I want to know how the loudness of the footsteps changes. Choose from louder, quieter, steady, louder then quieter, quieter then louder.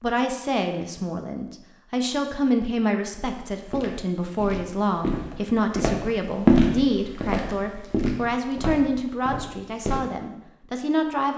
louder then quieter.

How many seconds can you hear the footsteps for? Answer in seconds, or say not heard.
7 s.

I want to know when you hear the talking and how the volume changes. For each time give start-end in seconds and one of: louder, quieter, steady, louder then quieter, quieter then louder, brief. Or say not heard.
0.0-11.3 steady.